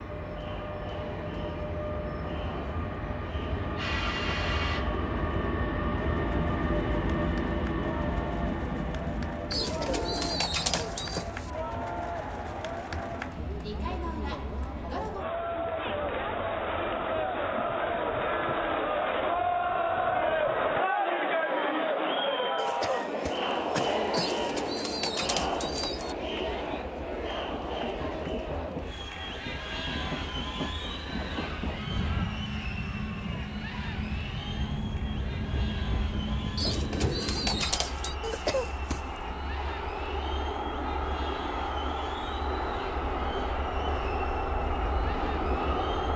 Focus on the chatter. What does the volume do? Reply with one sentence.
The volume of the chatter goes up, then down.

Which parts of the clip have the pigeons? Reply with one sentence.
The pigeons can be heard from 9.5 to 11.2 s, from 24.1 to 26.1 s and from 36.5 to 38.1 s.